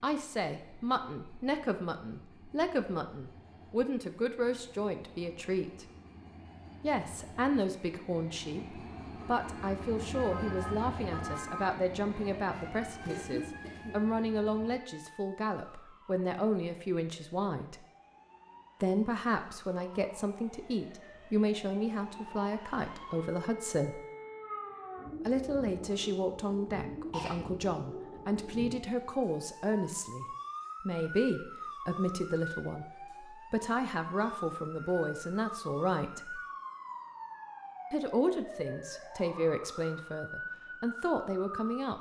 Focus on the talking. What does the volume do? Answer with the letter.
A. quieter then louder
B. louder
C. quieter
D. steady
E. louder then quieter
D.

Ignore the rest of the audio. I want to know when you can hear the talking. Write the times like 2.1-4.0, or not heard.
0.0-5.8, 6.8-17.9, 18.8-24.0, 25.2-36.4, 37.9-41.9.